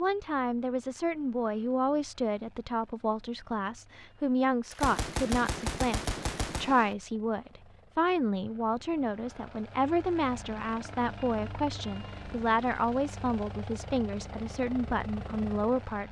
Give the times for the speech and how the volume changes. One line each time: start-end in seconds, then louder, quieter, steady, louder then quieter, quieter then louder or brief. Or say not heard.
0.0-16.0 steady.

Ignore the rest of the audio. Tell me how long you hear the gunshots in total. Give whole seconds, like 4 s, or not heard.
2 s.